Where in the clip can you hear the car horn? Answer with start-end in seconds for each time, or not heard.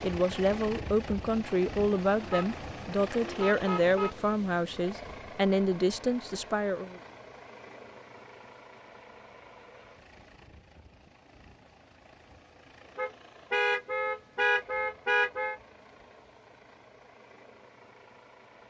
2.2-4.2, 12.9-15.6.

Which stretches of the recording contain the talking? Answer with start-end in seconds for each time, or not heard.
0.0-7.0.